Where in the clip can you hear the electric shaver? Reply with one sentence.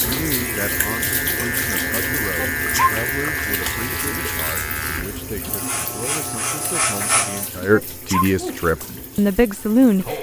The electric shaver can be heard from 0.0 to 7.5 s.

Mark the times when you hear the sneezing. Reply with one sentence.
You can hear the sneezing from 2.4 to 3.0 s and from 7.7 to 8.3 s.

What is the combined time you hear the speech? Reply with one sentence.
You can hear the speech for 10 seconds altogether.